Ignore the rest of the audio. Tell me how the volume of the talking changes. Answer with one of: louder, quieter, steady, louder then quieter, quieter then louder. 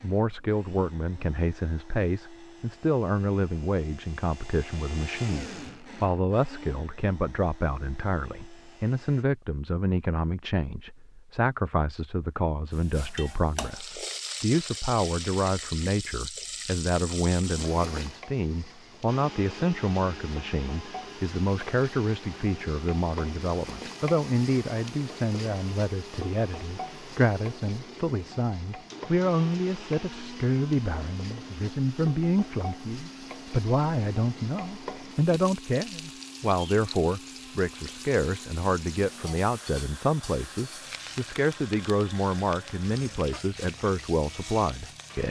steady.